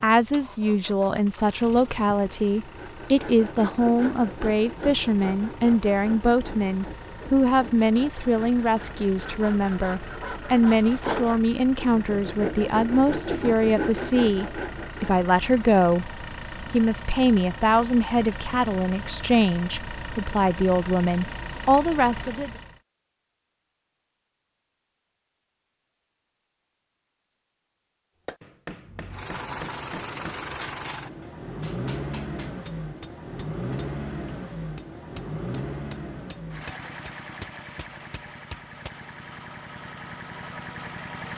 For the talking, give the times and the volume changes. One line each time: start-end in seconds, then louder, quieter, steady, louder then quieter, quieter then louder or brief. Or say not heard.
0.0-22.5 steady.